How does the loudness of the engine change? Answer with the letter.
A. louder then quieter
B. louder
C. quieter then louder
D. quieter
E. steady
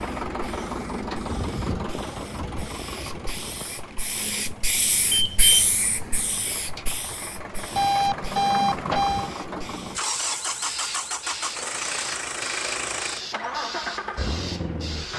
C.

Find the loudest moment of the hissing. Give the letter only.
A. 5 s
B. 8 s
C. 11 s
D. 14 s
A.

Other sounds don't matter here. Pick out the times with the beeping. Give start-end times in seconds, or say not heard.
5.1-5.5, 7.8-9.3.